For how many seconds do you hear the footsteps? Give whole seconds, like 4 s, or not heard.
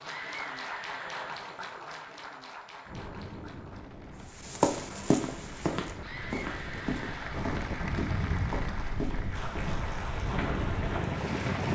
7 s.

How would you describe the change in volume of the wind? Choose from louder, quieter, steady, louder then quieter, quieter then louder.
louder.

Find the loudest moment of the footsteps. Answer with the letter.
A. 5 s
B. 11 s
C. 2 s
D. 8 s
A.